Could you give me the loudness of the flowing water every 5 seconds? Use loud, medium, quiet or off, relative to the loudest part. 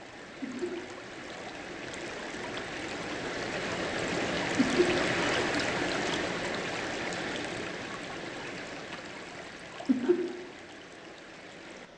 loud, loud, quiet.